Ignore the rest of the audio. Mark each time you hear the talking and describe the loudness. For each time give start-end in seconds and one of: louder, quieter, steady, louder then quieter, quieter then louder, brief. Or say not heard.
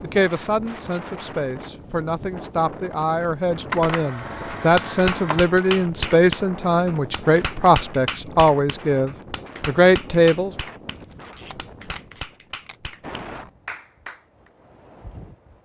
0.0-10.5 louder.